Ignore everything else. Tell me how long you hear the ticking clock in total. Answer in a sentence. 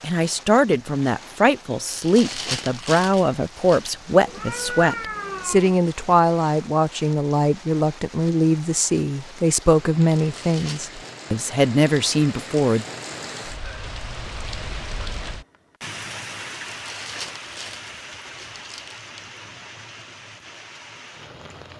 The ticking clock can't be heard in this clip.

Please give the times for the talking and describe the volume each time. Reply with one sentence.
You can hear the talking from 0.0 to 12.8 s, at a steady volume.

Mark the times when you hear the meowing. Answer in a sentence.
The meowing can be heard from 4.2 to 5.8 s.